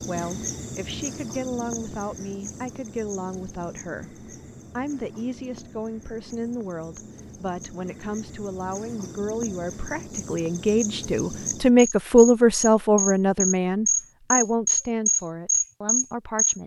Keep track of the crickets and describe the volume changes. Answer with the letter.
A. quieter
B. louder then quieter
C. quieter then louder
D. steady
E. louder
C.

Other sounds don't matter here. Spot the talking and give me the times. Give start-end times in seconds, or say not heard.
0.1-16.6.